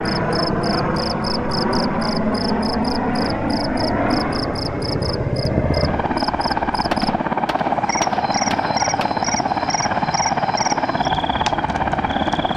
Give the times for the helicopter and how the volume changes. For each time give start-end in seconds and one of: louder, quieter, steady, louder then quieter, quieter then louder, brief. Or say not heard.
0.0-12.5 steady.